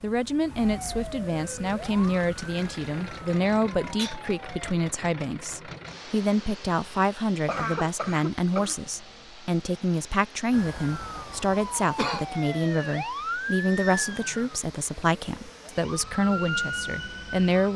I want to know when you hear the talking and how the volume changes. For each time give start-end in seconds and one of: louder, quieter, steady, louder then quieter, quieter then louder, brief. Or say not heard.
0.0-17.7 steady.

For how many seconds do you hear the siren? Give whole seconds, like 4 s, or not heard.
12 s.